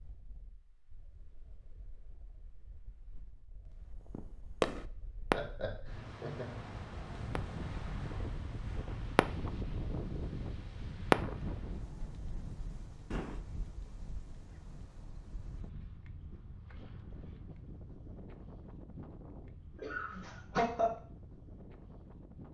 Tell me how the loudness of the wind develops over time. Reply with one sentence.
The volume of the wind goes up, then down.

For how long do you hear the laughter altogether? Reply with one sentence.
You can hear the laughter for 3 seconds altogether.